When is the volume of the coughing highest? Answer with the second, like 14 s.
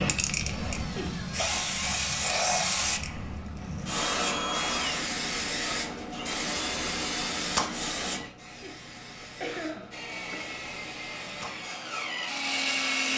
10 s.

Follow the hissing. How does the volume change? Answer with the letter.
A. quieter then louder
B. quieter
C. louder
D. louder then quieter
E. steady
B.